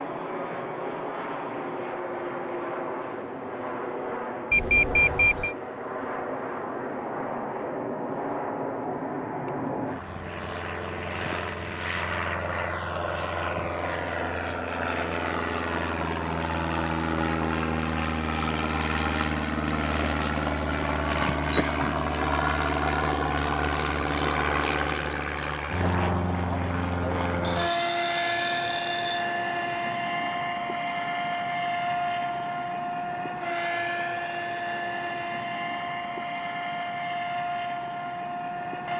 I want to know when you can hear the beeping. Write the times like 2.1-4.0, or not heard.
4.5-5.5, 21.2-21.9, 27.4-29.2.